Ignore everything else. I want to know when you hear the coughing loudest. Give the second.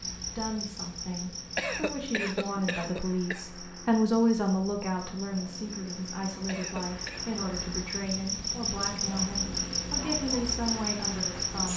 2 s.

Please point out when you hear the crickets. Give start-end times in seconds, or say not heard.
0.0-11.7.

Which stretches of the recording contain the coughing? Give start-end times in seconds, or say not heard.
1.6-3.5, 6.5-7.3.